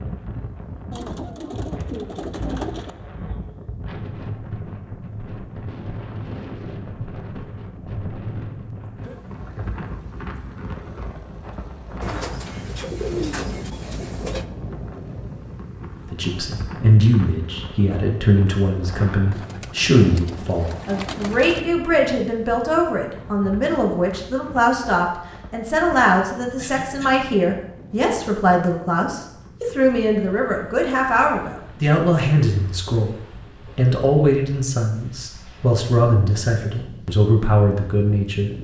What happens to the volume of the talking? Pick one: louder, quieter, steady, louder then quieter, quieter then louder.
steady.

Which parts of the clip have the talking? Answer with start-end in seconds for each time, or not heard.
16.1-38.5.